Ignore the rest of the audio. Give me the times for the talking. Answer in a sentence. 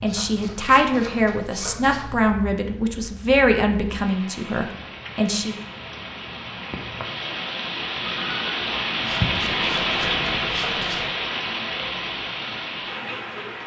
The talking can be heard from 0.0 to 5.6 s.